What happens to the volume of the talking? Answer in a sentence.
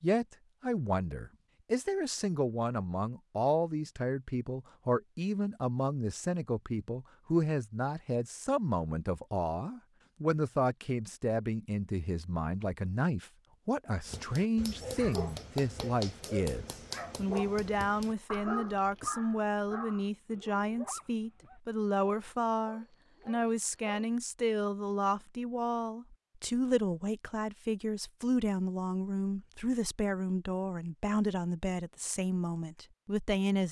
The volume of the talking stays about the same.